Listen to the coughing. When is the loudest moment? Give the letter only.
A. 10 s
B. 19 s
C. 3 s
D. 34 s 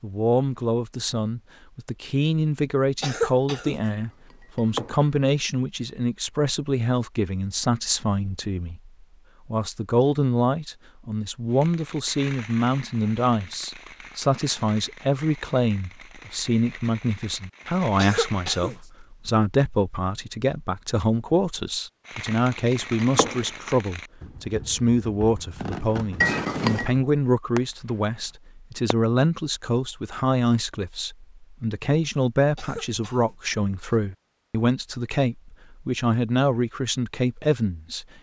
C.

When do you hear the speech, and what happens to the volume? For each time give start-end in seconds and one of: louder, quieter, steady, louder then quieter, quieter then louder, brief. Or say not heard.
0.0-38.0 steady.